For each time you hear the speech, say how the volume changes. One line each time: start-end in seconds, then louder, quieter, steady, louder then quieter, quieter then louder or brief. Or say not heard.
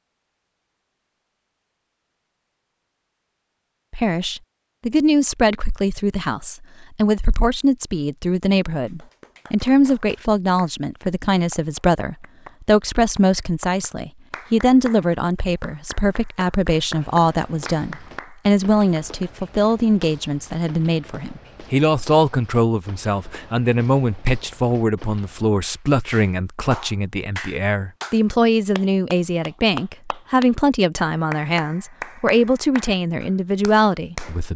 3.9-34.5 steady.